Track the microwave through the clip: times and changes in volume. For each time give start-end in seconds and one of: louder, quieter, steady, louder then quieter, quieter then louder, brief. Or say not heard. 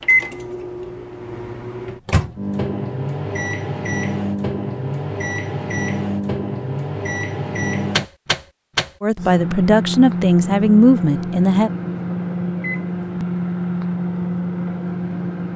0.0-15.5 steady.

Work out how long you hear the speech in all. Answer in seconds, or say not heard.
3 s.